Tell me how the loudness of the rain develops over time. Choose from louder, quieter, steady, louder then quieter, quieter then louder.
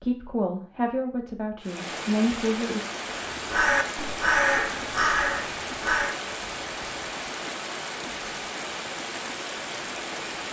steady.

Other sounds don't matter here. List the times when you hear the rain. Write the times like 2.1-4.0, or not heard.
1.6-10.4.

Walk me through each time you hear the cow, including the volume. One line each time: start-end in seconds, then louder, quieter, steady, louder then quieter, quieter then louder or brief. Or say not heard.
not heard.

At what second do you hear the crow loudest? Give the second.
4 s.